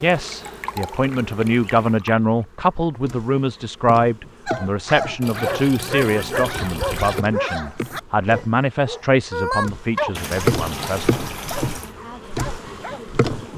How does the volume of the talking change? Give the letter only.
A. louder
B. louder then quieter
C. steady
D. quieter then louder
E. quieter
E.